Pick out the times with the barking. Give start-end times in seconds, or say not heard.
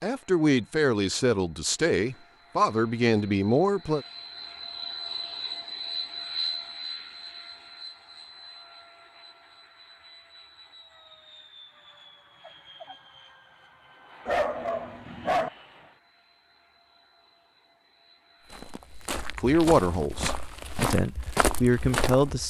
14.2-15.5.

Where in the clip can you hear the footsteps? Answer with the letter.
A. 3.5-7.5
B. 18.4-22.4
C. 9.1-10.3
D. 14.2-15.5
B.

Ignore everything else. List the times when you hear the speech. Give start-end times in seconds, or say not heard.
0.0-4.0, 19.4-22.4.